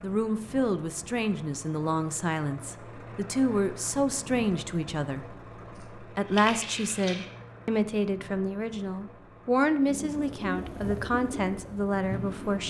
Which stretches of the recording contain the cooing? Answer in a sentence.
You can hear the cooing from 9.8 to 12.6 s.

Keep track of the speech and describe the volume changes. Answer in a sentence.
The volume of the speech stays about the same.